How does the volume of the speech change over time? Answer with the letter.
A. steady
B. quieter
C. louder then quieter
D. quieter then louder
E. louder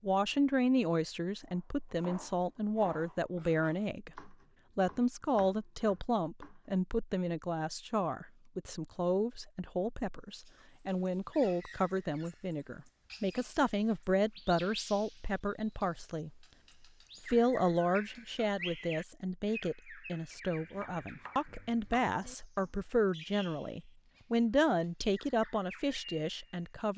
A.